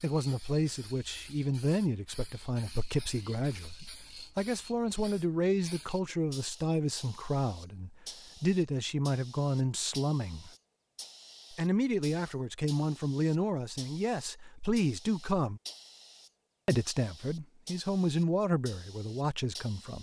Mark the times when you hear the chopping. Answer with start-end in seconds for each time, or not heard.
not heard.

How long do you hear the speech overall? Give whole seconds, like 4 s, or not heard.
18 s.